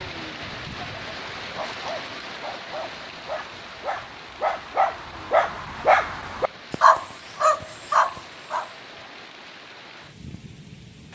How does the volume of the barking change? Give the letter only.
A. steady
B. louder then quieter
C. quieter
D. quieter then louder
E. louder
E.